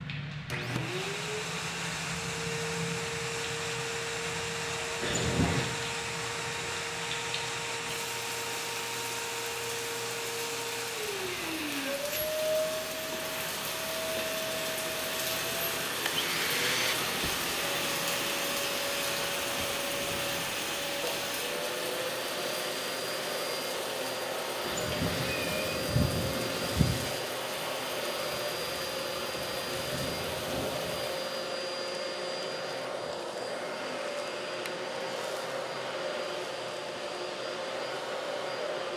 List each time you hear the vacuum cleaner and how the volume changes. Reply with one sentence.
You can hear the vacuum cleaner from 0.5 to 38.9 s, at a steady volume.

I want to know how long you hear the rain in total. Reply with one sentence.
You can hear the rain for 31 seconds altogether.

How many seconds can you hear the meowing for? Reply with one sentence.
You can hear the meowing for 3 seconds altogether.